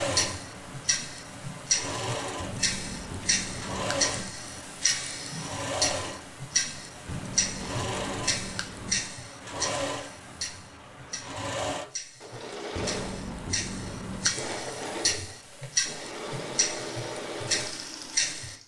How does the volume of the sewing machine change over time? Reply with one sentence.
The volume of the sewing machine stays about the same.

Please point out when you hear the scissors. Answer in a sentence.
The scissors can be heard from 2.4 to 4.3 s, from 7.0 to 9.1 s and from 12.8 to 14.3 s.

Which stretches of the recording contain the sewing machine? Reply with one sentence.
You can hear the sewing machine from 0.0 to 18.6 s.